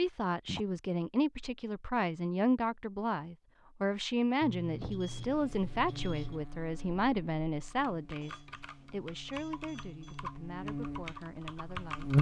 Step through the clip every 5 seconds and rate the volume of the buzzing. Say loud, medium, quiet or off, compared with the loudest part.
off, quiet, loud.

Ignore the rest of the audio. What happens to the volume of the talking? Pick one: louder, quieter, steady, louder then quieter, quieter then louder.
quieter.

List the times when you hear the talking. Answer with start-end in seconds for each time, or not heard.
0.0-12.1.